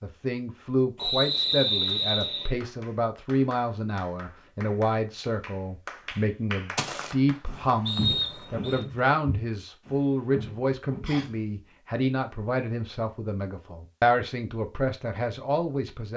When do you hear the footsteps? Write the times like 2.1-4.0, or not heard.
6.8-11.4.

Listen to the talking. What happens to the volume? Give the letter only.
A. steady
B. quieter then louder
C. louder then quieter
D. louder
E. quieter
A.